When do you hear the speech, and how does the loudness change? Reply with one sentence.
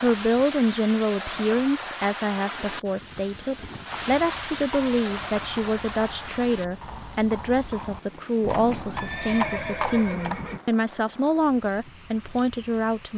The speech can be heard from 0.0 to 13.1 s, at a steady volume.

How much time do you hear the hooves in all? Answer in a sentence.
The hooves can be heard for 7 seconds in total.